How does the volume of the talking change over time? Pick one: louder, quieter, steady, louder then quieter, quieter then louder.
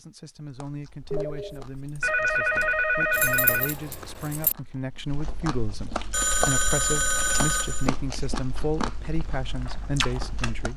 louder.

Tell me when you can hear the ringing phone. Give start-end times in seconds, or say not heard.
1.1-3.8, 6.1-7.9.